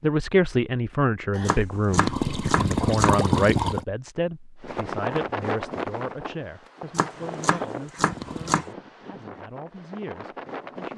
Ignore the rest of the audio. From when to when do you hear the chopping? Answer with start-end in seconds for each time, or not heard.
1.4-3.1, 7.0-8.7.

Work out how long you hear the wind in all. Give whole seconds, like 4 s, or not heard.
6 s.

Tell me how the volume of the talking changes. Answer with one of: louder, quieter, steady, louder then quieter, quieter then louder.
quieter.